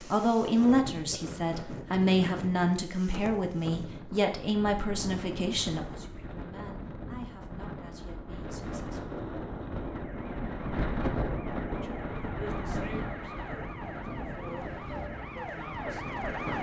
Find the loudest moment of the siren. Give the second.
16 s.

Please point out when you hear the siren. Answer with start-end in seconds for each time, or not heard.
9.9-16.5.